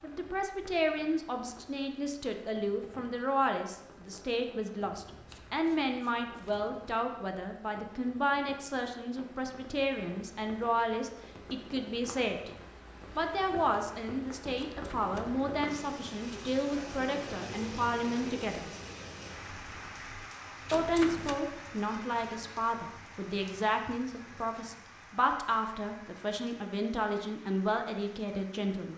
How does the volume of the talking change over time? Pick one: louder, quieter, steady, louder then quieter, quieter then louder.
steady.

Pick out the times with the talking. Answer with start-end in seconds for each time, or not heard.
0.0-12.5, 13.2-18.7, 20.7-28.9.